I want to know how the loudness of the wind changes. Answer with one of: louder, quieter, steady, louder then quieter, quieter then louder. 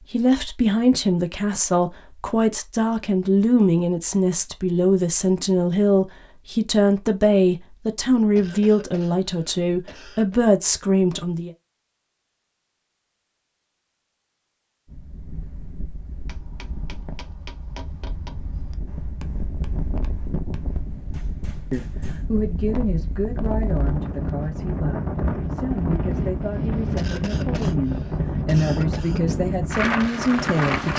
louder.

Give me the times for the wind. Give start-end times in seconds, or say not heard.
14.8-30.9.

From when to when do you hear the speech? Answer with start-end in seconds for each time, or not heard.
0.1-11.5, 21.7-30.9.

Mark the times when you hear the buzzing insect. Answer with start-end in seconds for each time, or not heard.
not heard.